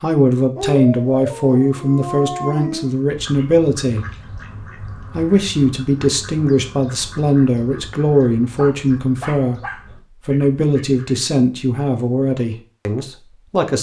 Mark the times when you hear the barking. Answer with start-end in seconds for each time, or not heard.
0.6-2.9, 8.6-9.8.